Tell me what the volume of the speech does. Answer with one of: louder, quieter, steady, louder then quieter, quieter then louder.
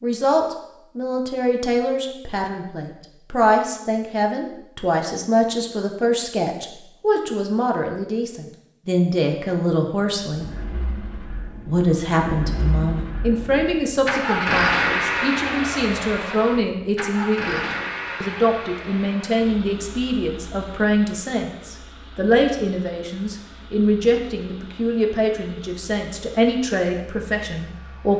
steady.